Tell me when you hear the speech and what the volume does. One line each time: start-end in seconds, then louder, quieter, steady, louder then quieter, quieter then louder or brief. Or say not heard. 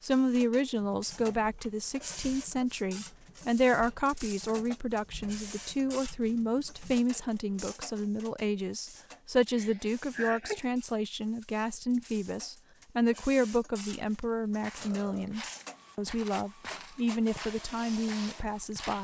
0.0-18.9 steady.